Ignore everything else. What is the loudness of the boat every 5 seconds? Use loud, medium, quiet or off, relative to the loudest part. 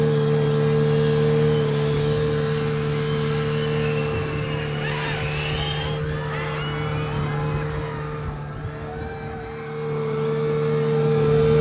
loud, medium, loud.